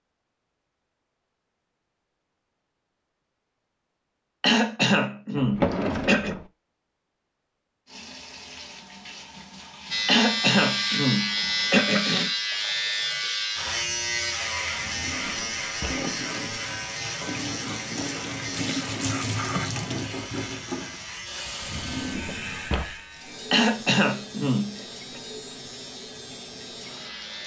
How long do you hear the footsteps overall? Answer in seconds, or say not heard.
not heard.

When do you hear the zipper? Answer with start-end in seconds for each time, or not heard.
not heard.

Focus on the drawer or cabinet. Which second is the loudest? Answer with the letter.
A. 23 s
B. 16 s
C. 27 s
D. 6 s
D.